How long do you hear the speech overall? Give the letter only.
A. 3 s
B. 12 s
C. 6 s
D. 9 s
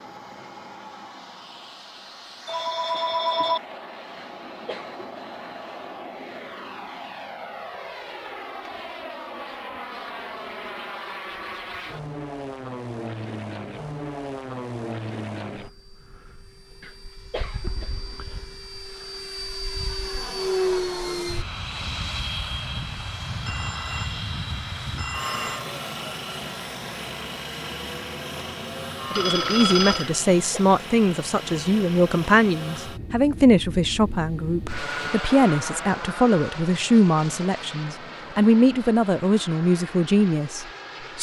B.